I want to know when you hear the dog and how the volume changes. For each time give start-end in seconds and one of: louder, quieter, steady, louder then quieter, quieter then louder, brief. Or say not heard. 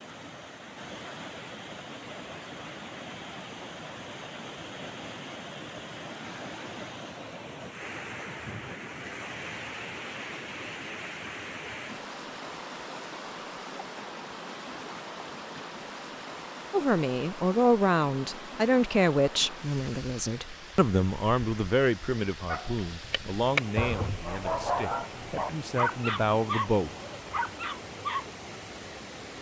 22.4-28.2 quieter.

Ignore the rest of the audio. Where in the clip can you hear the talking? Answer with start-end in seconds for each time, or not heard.
16.7-26.9.